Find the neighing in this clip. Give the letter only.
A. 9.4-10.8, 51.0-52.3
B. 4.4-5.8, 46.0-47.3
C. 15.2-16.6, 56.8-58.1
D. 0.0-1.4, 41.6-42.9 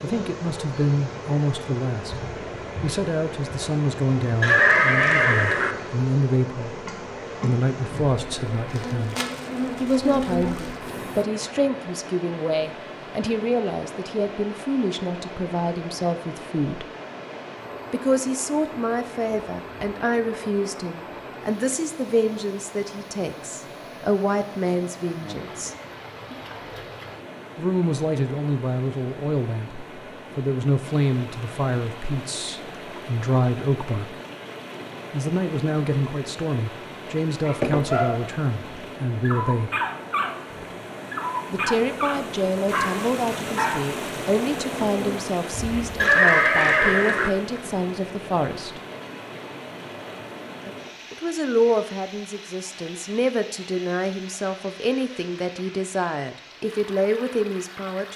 B.